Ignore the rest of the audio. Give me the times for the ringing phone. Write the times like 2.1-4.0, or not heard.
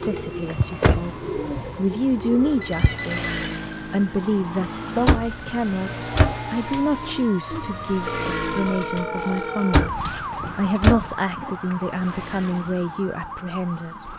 2.6-3.6, 8.1-9.9.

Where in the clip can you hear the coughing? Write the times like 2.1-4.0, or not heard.
not heard.